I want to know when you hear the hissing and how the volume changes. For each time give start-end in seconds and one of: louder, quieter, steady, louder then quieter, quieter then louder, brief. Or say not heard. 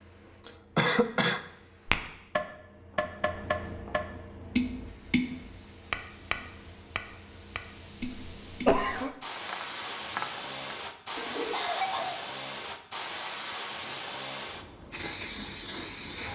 0.0-16.3 louder.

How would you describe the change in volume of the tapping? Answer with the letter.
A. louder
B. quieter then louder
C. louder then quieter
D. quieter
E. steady
D.